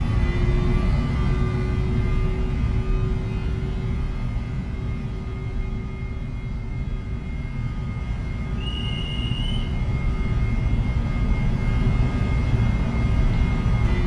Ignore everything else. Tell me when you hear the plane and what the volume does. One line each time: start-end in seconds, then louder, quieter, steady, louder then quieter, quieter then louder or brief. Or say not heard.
0.0-14.0 quieter then louder.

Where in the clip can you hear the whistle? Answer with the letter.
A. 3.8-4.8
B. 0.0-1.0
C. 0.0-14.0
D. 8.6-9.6
D.